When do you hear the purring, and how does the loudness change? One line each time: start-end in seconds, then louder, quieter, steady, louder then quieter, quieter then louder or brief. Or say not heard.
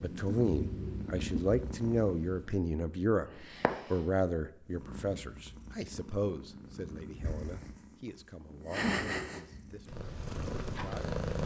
0.0-11.4 quieter then louder.